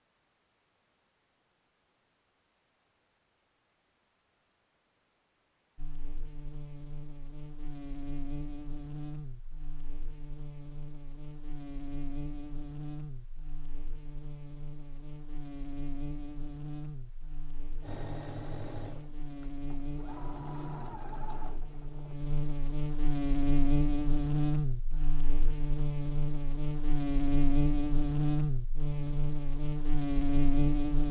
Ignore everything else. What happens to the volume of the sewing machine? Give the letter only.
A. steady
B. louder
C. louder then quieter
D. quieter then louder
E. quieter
D.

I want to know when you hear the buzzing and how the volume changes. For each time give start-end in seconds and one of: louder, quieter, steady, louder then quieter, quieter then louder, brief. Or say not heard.
5.8-31.0 louder.